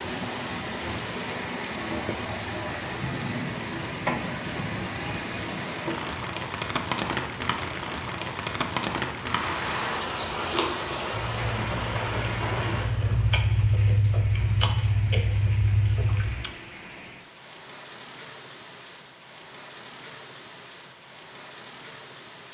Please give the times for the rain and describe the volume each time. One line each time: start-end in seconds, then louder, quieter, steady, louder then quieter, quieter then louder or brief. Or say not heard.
0.0-22.5 quieter.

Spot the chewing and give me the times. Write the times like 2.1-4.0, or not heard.
9.2-16.5.